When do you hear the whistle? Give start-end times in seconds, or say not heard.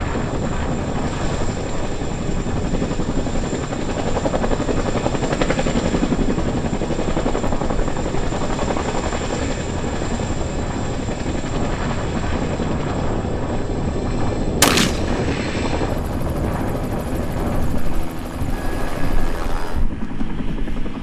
not heard.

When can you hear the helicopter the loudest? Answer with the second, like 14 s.
6 s.